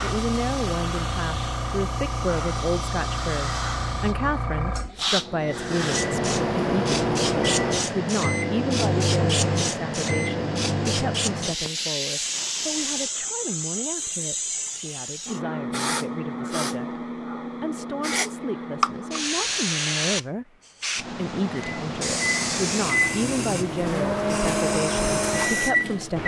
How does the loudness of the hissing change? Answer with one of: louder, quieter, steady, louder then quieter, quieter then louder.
steady.